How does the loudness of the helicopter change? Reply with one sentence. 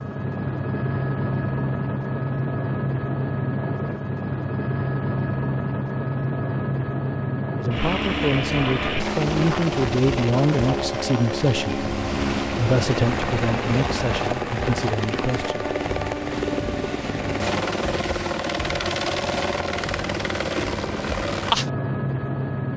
The volume of the helicopter stays about the same.